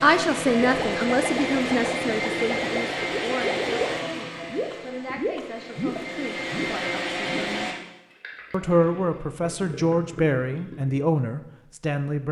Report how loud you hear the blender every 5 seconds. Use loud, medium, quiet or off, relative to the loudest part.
loud, loud, off.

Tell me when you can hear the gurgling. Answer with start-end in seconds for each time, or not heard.
0.5-11.0.